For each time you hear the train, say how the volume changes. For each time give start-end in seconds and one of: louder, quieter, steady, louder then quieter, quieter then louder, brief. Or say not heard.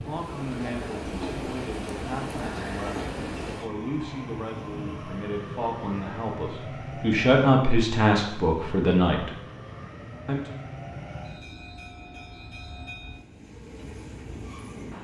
0.0-14.9 quieter.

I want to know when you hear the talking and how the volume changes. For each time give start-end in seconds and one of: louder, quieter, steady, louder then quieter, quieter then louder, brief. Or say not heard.
0.1-9.3 louder
10.2-10.7 brief.